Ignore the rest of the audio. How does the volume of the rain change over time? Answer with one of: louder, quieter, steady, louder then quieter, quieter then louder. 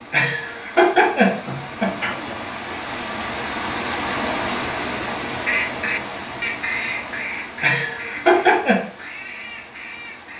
louder then quieter.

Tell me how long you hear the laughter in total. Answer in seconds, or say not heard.
3 s.